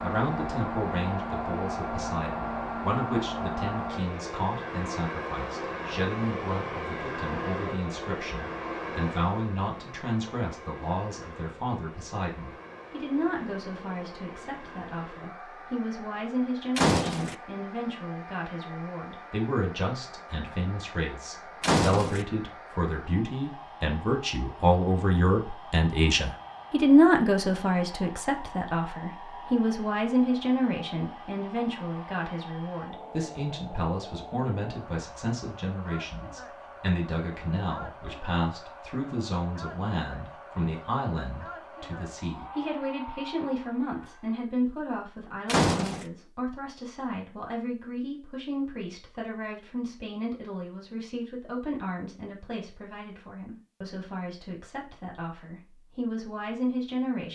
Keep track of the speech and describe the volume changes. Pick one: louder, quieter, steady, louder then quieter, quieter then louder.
louder then quieter.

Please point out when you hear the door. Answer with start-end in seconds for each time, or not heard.
16.8-17.4, 21.6-22.2, 45.5-46.0.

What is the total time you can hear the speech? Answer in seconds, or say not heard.
57 s.